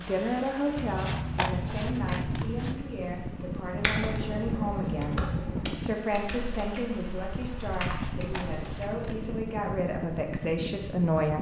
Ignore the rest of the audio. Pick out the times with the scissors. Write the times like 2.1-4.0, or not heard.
0.8-2.8, 7.8-9.3.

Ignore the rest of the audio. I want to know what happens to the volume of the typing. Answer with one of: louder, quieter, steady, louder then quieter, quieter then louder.
quieter then louder.